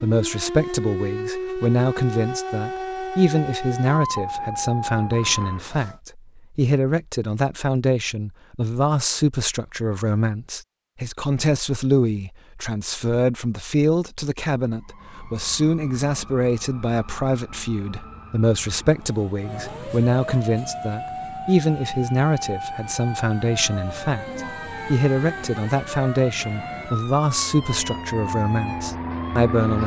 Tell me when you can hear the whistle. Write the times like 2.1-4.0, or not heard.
not heard.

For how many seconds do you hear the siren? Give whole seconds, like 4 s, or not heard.
21 s.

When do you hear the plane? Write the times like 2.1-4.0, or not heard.
26.4-29.8.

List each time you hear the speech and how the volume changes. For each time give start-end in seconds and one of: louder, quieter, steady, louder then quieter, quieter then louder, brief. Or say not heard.
0.0-29.8 steady.